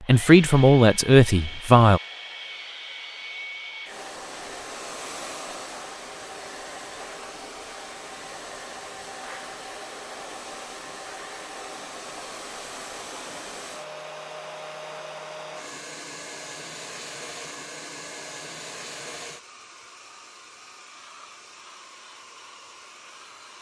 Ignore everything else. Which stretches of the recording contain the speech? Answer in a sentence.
You can hear the speech from 0.1 to 2.0 s.